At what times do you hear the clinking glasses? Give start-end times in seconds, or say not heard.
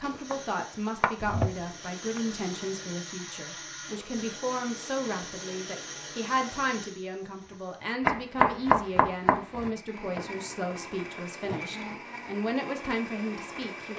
not heard.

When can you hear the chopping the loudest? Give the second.
9 s.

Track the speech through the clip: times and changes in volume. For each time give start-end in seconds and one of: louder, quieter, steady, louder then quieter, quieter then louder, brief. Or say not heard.
0.0-13.9 steady.